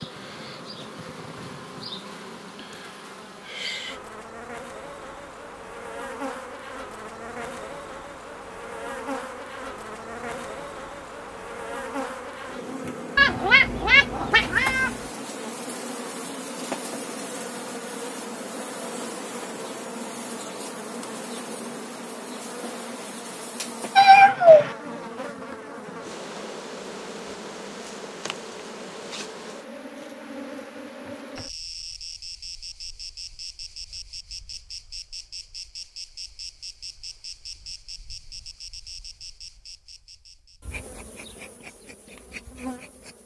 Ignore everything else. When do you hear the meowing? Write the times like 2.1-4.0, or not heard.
13.2-14.9, 23.9-24.7.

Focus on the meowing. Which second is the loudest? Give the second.
24 s.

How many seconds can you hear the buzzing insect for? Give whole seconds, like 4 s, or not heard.
43 s.